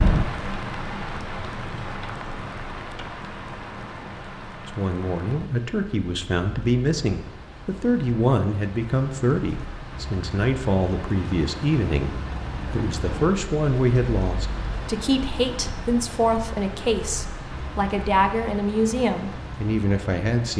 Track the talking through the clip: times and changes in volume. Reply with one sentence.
You can hear the talking from 4.7 to 20.5 s, at a steady volume.